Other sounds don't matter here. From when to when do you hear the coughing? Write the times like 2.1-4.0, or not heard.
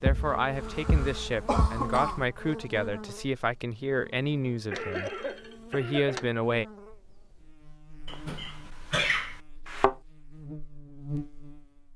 0.5-2.2, 4.7-6.2, 8.1-9.4.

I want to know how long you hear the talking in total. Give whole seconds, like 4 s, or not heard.
6 s.